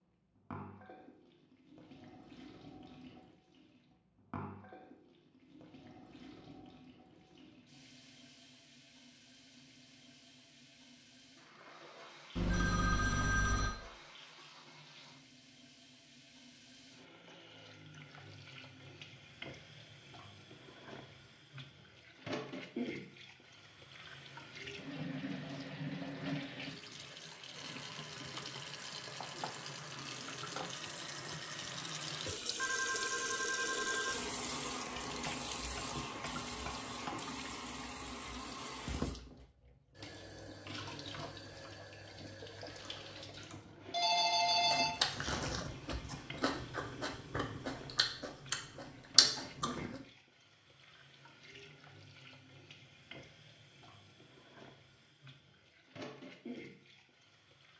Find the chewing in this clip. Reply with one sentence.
You can hear the chewing from 44.5 to 50.0 s.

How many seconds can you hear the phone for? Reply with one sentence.
The phone can be heard for 6 seconds in total.